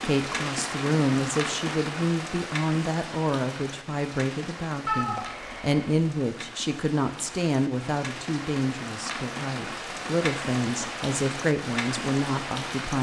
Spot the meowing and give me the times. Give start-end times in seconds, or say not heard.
4.8-5.8.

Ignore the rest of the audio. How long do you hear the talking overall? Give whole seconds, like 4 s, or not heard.
13 s.